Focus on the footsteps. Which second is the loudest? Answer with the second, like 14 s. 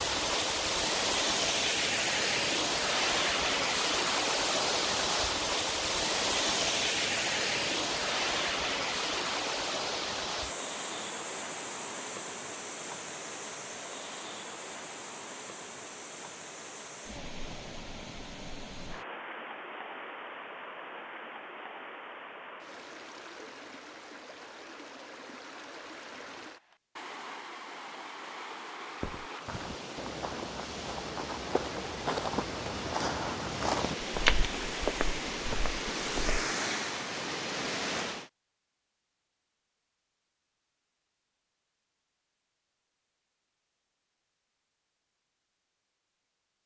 34 s.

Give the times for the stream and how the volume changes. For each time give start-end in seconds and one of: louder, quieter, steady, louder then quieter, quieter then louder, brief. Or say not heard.
0.0-38.3 quieter then louder.